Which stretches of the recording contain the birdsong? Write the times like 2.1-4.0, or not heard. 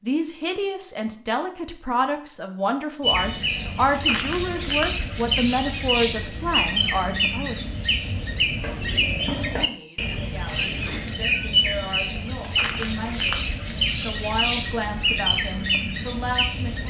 3.0-16.8.